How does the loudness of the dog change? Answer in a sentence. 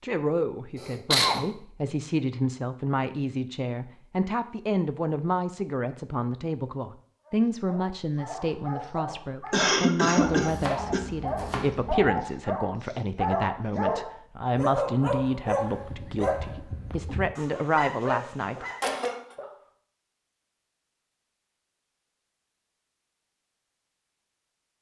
The loudness of the dog goes up, then down.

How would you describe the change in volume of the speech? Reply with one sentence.
The loudness of the speech stays about the same.